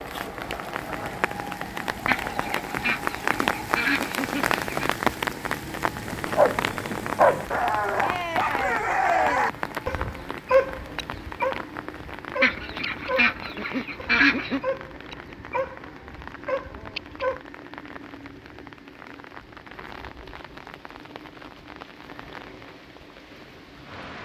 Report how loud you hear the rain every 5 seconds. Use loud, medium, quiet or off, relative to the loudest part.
loud, loud, medium, quiet, quiet.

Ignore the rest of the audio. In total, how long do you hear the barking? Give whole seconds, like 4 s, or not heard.
11 s.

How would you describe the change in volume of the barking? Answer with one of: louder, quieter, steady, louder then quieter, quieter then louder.
quieter.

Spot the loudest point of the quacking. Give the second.
14 s.